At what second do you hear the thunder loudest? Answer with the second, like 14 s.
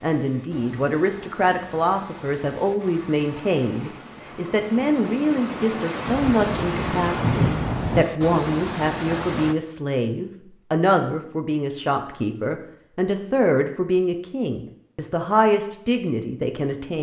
7 s.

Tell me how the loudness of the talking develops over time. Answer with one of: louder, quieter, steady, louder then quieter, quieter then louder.
steady.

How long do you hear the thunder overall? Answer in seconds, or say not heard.
2 s.